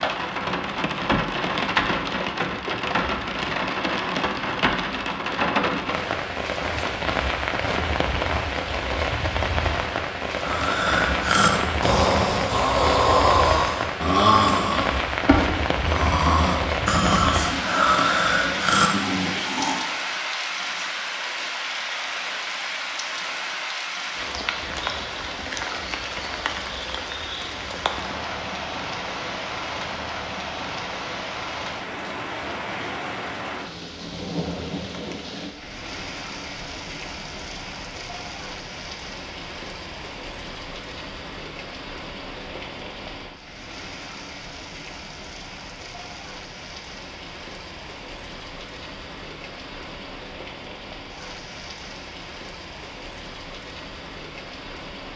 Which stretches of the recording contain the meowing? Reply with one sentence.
The meowing can't be heard in this clip.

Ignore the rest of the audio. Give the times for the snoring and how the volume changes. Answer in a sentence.
You can hear the snoring from 10.4 to 19.8 s, at a steady volume.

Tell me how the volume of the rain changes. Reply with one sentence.
The volume of the rain goes down.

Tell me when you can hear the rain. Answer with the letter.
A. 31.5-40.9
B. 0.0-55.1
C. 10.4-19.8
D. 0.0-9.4
B.